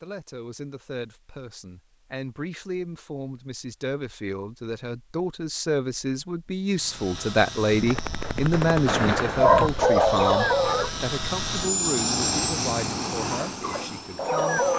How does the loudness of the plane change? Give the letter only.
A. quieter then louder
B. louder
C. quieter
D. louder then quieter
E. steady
D.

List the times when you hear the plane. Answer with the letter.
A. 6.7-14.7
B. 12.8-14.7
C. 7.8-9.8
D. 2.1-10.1
A.